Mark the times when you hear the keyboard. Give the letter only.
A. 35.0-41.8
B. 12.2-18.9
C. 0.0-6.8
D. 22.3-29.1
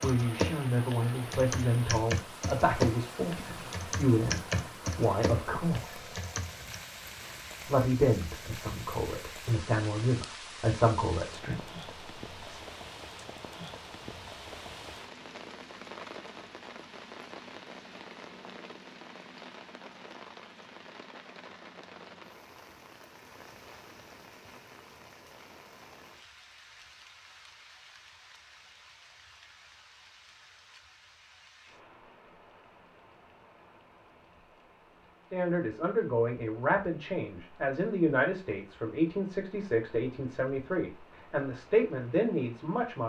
C.